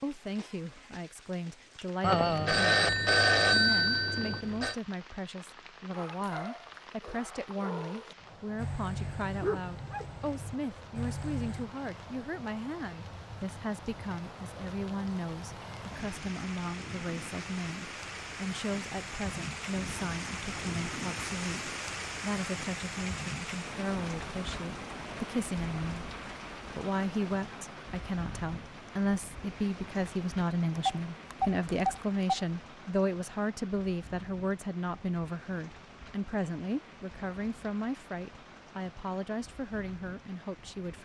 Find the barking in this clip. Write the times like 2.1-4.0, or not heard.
5.9-11.7.